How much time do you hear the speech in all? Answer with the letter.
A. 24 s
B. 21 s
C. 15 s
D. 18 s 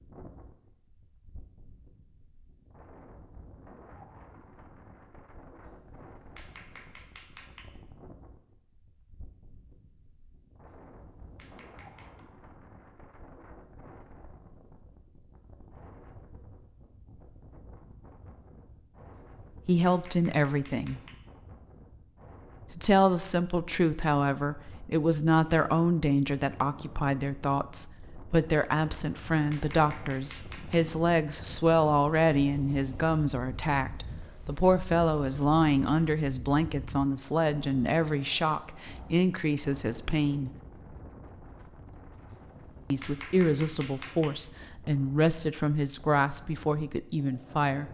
A.